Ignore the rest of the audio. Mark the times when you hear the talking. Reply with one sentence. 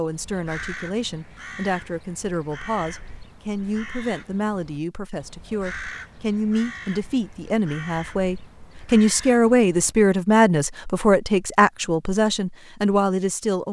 You can hear the talking from 0.0 to 13.6 s.